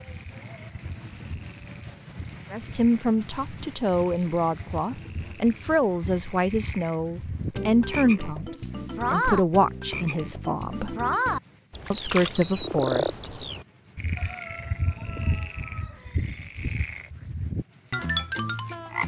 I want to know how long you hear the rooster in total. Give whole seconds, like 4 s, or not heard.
2 s.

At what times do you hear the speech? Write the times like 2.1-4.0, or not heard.
2.5-10.9, 11.9-13.3.